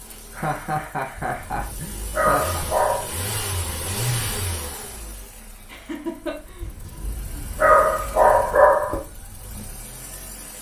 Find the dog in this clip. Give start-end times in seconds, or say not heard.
1.1-3.0, 6.6-9.1.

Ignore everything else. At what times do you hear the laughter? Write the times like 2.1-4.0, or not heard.
0.3-2.6, 5.7-6.7.